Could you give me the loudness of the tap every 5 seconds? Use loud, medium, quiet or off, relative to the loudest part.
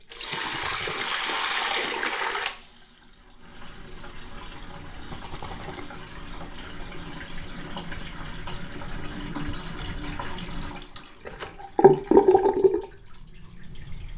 medium, quiet, loud.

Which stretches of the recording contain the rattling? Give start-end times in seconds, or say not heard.
0.3-1.1, 5.1-5.8, 11.3-11.8.